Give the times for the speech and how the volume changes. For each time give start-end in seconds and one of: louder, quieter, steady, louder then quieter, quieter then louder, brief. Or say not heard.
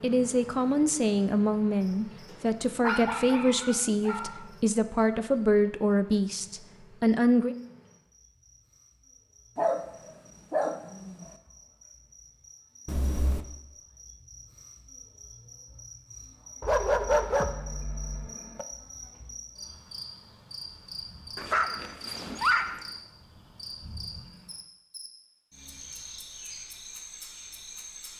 0.0-7.5 steady.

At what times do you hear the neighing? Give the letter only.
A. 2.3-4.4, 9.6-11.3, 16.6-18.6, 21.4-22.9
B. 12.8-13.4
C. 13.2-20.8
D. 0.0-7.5
B.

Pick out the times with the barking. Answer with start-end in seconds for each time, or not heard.
2.3-4.4, 9.6-11.3, 16.6-18.6, 21.4-22.9.